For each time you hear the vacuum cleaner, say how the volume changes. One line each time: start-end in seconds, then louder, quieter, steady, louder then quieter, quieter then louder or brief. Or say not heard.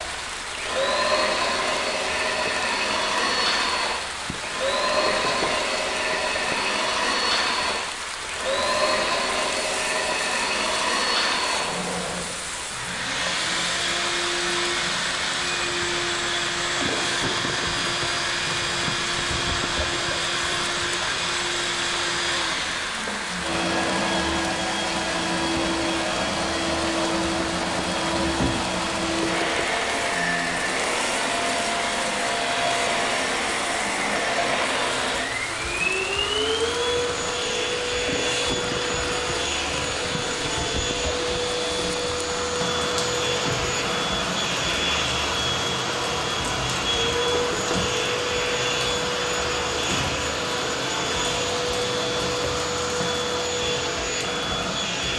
0.0-55.1 steady.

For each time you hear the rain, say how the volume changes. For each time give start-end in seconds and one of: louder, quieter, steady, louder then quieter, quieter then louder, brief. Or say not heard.
0.0-55.1 steady.